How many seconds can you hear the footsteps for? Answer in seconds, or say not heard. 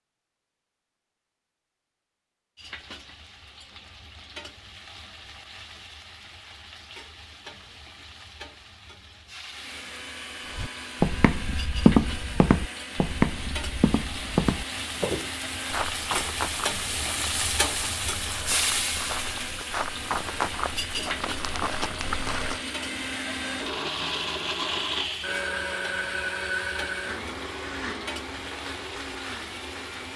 12 s.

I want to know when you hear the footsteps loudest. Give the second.
12 s.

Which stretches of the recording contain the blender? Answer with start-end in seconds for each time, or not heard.
9.5-30.1.